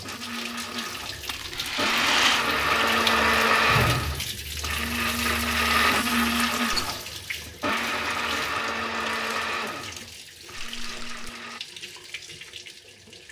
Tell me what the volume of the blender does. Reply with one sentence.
The volume of the blender goes up, then down.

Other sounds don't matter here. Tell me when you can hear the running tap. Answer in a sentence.
You can hear the running tap from 0.0 to 13.2 s.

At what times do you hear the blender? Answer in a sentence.
You can hear the blender from 0.0 to 11.6 s.